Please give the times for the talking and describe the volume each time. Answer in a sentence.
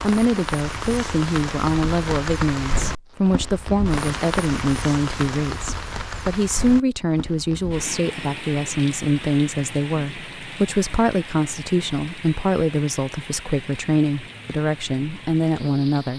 The talking can be heard from 0.0 to 16.1 s, at a steady volume.